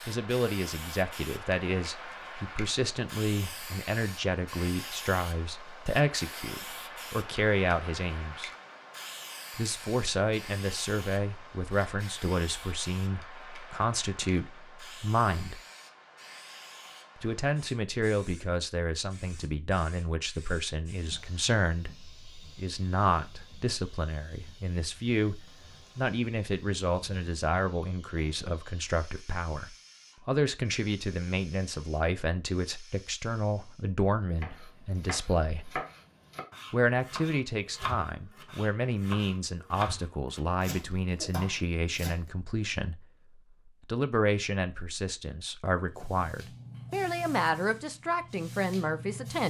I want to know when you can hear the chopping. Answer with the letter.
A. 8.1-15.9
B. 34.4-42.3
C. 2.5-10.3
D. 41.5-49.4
B.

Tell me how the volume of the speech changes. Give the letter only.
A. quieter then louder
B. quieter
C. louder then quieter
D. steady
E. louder
D.